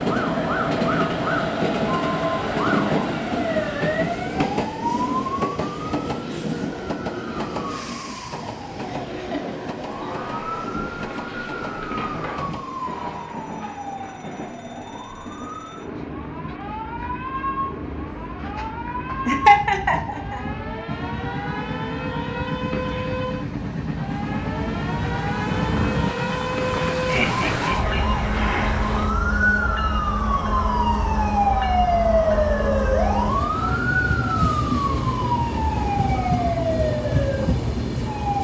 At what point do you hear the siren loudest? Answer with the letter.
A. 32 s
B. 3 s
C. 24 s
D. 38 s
A.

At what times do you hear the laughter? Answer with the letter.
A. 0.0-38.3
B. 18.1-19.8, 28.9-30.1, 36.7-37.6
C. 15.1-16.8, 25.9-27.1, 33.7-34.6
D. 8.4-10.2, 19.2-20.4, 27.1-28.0
D.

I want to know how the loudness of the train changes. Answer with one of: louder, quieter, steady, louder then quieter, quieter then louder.
quieter then louder.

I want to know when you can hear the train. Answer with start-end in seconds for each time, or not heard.
0.0-38.3.